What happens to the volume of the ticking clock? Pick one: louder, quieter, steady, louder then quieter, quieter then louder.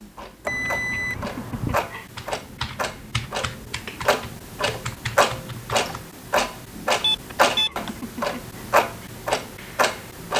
louder.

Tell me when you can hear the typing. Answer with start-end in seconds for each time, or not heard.
2.1-6.0.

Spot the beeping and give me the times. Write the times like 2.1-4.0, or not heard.
0.5-1.9, 7.0-8.0.